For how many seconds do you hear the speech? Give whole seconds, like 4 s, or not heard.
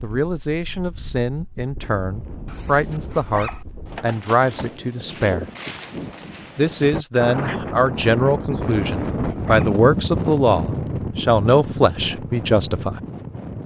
12 s.